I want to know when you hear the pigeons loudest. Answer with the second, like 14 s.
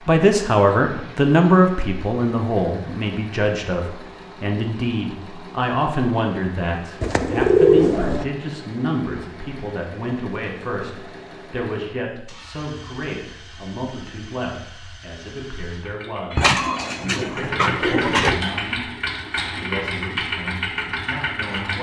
8 s.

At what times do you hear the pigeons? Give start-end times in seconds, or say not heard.
7.0-8.2, 16.4-18.4.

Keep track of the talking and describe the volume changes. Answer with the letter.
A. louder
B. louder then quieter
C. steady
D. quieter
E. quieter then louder
D.